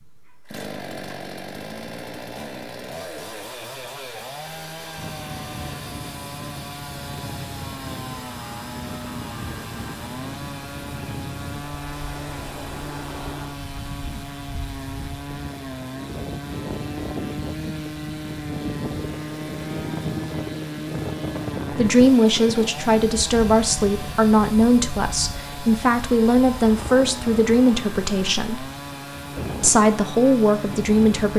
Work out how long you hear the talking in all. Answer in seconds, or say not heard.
9 s.